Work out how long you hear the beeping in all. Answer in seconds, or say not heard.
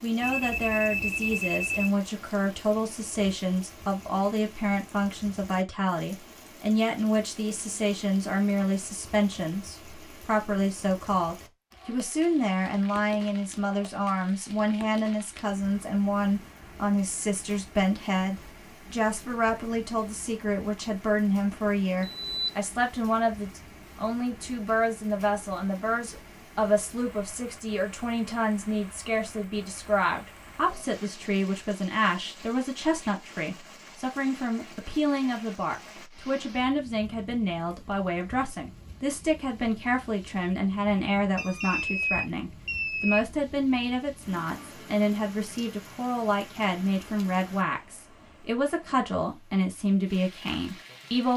4 s.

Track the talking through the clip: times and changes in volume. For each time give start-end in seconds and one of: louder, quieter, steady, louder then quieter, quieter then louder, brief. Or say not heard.
0.0-51.3 steady.